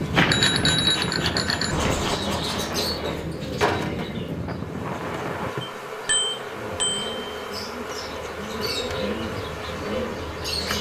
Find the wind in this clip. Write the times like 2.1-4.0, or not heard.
0.0-5.5.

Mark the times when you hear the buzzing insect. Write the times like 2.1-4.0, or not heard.
0.0-10.7.